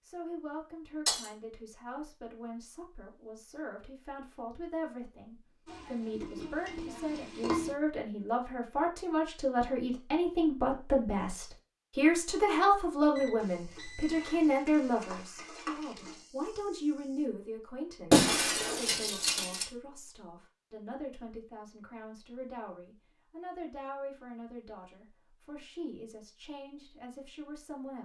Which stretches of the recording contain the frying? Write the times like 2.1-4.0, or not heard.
5.7-7.8, 13.3-17.2.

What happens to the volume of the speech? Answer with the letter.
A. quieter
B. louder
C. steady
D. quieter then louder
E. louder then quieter
E.